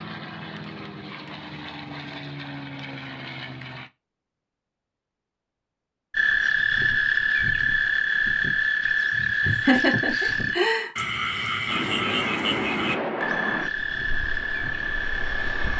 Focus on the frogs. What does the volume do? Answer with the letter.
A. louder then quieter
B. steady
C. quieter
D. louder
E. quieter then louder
C.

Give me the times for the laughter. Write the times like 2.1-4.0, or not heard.
9.1-10.9.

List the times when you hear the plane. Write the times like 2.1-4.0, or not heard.
0.0-3.9, 11.7-15.7.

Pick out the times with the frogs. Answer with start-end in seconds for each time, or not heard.
6.1-15.7.